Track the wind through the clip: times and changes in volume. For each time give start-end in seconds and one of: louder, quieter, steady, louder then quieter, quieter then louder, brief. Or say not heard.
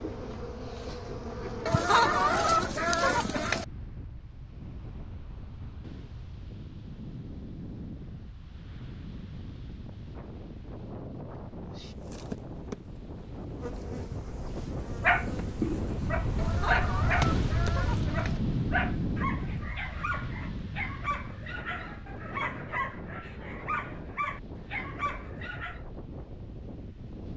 0.0-27.3 louder then quieter.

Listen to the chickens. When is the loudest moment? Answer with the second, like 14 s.
2 s.